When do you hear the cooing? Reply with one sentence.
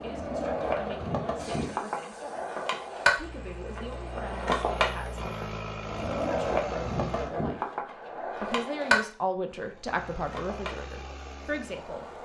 You can't hear the cooing here.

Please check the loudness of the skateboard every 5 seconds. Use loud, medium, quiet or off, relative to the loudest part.
loud, loud, quiet.